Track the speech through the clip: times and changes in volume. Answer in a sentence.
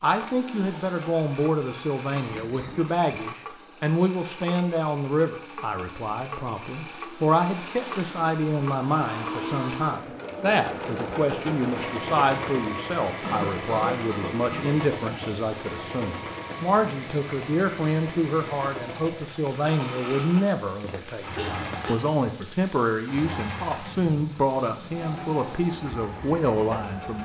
The speech can be heard from 0.0 to 27.1 s, at a steady volume.